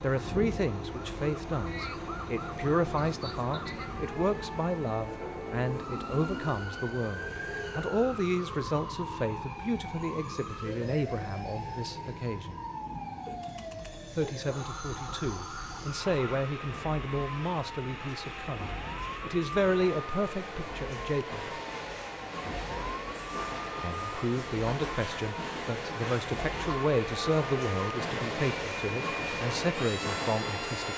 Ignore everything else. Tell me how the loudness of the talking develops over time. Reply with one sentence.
The loudness of the talking stays about the same.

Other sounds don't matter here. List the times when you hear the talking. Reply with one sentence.
You can hear the talking from 0.0 to 12.6 s, from 14.2 to 21.4 s and from 23.8 to 30.9 s.